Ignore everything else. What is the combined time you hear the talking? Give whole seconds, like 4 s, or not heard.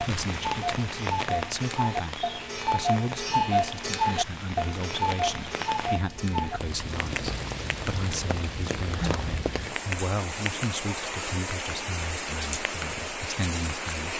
14 s.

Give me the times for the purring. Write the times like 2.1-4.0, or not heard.
not heard.